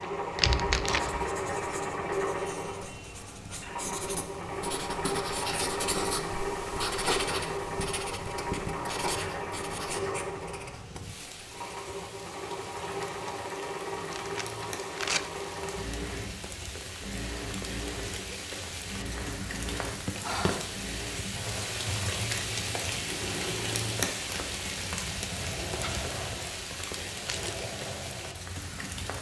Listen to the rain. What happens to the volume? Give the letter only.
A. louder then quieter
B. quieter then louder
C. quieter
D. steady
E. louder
E.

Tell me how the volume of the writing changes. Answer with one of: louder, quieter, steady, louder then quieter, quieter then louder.
louder then quieter.